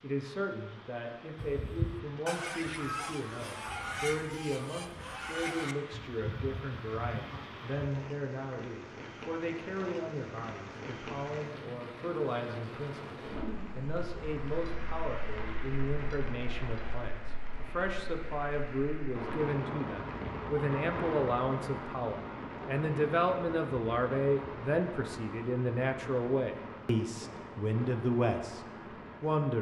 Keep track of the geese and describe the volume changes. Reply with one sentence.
The volume of the geese goes down.